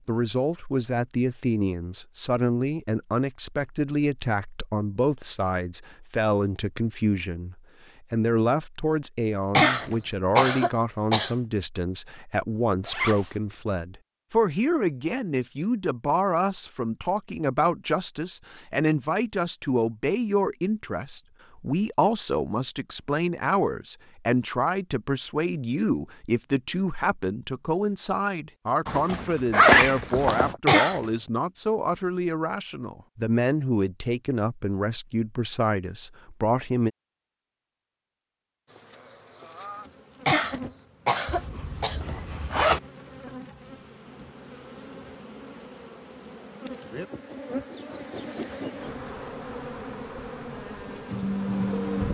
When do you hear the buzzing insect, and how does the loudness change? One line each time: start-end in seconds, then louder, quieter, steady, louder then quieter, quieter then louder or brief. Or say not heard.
38.6-52.0 louder.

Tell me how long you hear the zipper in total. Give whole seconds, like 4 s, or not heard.
4 s.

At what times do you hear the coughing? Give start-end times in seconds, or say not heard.
9.6-11.3, 30.6-31.1, 40.2-42.0.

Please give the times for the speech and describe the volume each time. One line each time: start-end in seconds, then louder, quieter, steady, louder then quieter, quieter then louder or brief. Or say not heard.
0.1-36.9 steady.